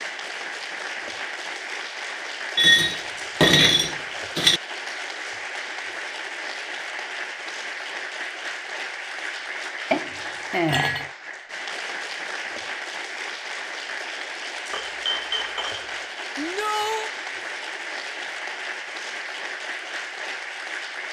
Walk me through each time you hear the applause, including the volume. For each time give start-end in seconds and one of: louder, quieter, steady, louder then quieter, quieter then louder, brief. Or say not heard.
0.0-21.0 steady.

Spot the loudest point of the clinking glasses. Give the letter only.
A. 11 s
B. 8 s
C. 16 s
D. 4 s
D.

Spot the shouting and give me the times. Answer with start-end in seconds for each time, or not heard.
16.4-17.1.